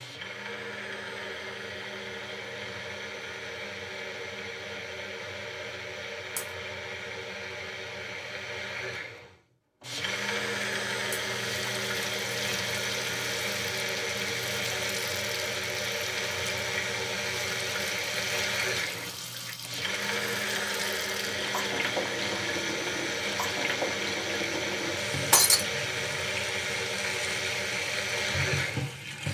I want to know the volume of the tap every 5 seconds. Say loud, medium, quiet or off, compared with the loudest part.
off, off, loud, loud, loud, loud.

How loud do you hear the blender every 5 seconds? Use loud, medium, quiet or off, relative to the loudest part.
medium, medium, loud, loud, loud, loud.